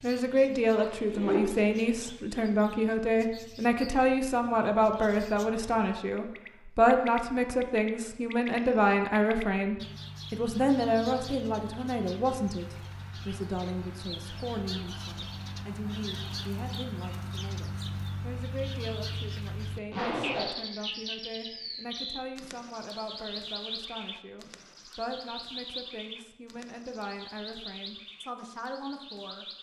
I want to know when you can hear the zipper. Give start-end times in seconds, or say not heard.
0.8-1.8, 19.9-20.6.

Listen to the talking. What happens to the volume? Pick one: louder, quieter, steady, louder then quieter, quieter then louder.
quieter.